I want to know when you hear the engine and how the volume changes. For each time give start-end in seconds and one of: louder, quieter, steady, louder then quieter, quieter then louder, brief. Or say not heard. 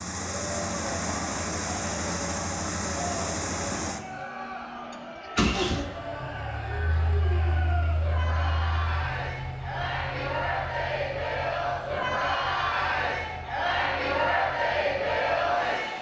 0.0-15.9 quieter.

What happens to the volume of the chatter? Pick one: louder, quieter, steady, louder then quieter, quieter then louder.
louder.